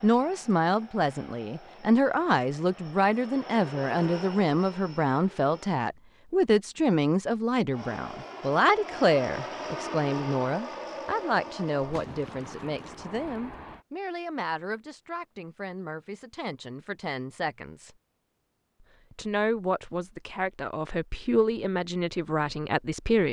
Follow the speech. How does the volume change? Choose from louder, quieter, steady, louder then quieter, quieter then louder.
quieter then louder.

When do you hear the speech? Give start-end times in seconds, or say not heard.
0.0-17.9, 19.1-23.2.